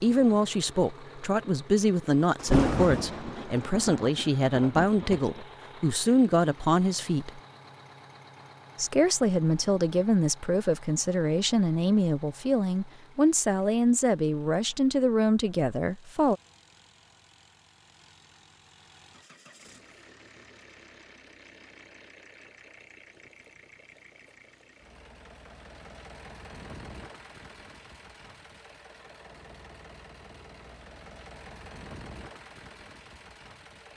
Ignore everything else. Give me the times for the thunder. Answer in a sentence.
You can hear the thunder from 2.4 to 5.5 s.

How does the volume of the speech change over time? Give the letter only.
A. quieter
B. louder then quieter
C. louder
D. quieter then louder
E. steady
E.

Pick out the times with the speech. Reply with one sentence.
The speech can be heard from 0.0 to 7.4 s and from 8.8 to 16.4 s.